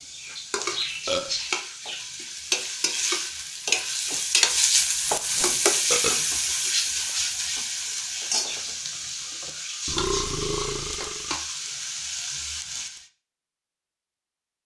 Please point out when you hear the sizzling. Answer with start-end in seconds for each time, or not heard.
0.0-13.1.